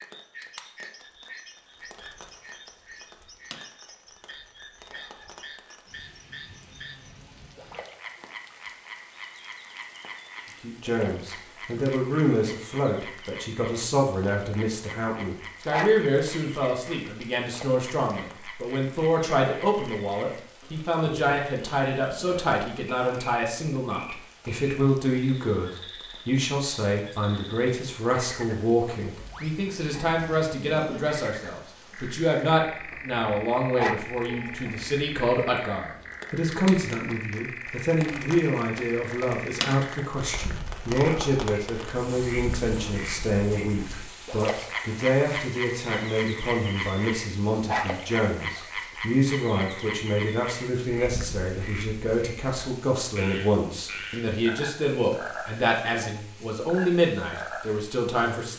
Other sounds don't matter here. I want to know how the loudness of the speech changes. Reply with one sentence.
The loudness of the speech stays about the same.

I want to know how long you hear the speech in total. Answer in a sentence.
The speech can be heard for 48 seconds in total.